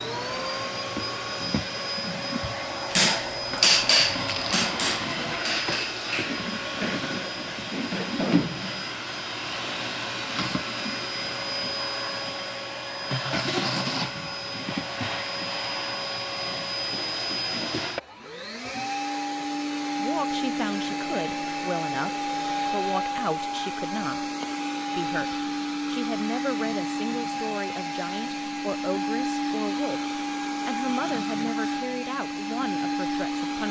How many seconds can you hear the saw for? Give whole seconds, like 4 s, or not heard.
not heard.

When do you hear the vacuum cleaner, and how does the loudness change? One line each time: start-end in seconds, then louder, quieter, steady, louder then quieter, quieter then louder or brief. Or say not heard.
0.0-33.6 steady.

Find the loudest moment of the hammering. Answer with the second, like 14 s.
4 s.